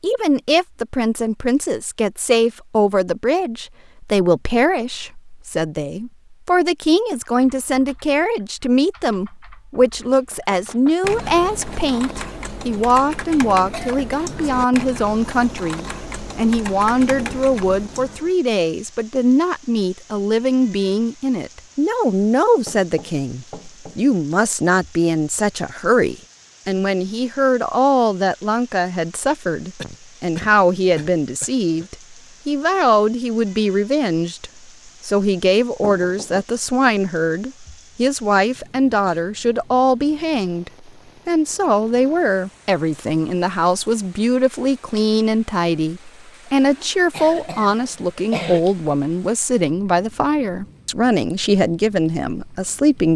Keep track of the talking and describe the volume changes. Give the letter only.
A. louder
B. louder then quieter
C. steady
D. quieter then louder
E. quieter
C.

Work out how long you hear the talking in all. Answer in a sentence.
You can hear the talking for 53 seconds altogether.